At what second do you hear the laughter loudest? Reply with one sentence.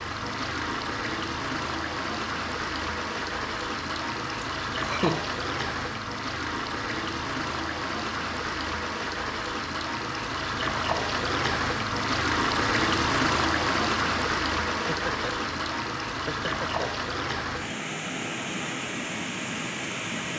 The volume of the laughter peaks at 5 seconds.